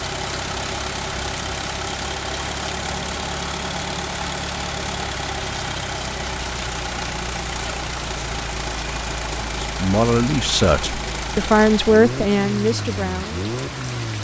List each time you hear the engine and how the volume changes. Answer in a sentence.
You can hear the engine from 0.0 to 14.1 s, at a steady volume.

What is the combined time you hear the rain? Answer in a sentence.
The rain can be heard for 14 seconds in total.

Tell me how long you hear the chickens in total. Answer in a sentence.
The chickens can't be heard in this clip.